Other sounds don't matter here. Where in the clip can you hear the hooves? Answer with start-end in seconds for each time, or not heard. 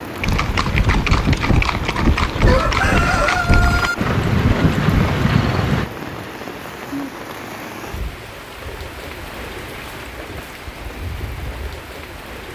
0.2-5.9.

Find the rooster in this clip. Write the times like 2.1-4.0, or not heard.
2.5-4.0.